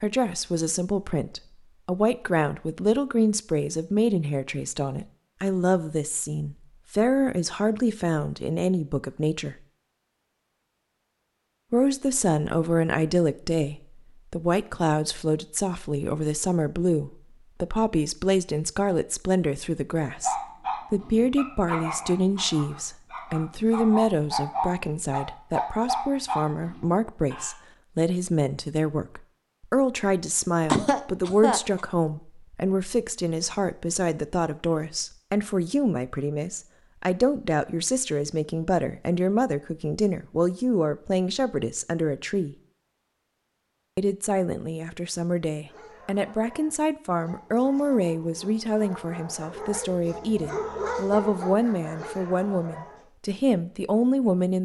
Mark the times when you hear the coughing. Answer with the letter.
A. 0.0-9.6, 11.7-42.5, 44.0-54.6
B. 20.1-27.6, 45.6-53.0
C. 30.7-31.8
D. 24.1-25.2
C.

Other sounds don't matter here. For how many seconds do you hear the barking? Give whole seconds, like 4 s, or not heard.
15 s.